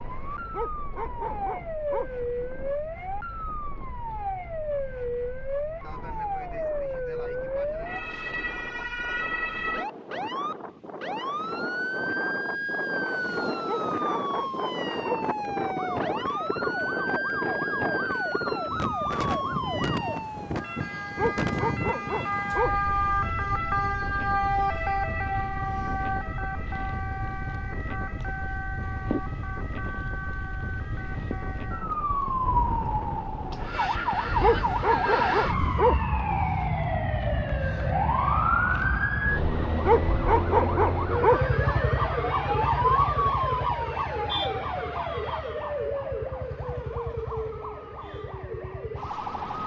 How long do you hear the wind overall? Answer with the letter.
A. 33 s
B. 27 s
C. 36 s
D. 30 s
C.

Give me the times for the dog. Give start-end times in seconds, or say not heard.
0.5-2.5, 13.7-15.2, 21.1-23.1, 34.4-36.4, 39.9-41.8.